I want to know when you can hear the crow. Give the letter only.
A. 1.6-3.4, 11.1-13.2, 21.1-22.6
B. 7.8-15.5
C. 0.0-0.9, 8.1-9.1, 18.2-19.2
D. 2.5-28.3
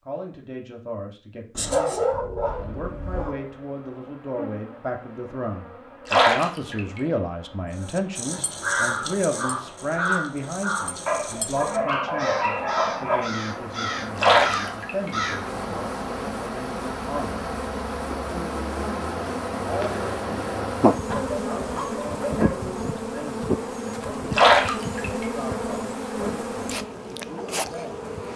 B.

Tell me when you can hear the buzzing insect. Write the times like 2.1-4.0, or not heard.
2.5-28.3.